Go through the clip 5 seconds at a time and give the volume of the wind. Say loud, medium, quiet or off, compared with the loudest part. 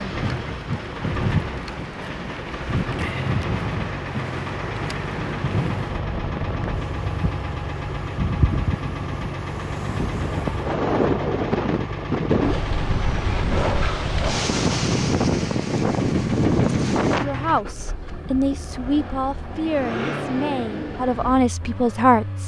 medium, medium, loud, loud, off.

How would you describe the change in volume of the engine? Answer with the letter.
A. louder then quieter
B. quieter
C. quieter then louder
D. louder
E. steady
E.